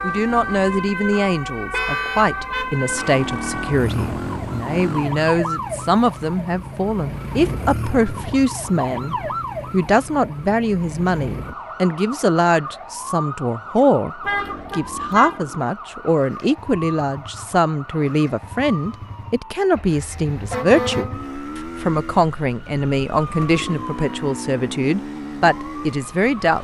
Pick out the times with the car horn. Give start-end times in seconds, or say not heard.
1.7-2.7, 14.2-15.4, 19.9-21.2.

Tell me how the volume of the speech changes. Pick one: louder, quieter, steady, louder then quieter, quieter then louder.
steady.